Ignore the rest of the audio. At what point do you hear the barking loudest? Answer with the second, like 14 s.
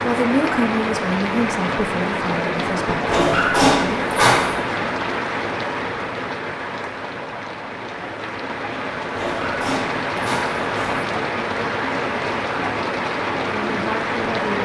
4 s.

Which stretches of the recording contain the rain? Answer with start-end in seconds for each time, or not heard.
0.0-14.5.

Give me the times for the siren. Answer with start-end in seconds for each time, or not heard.
not heard.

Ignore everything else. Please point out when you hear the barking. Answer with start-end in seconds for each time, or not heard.
3.0-4.7, 9.2-11.1.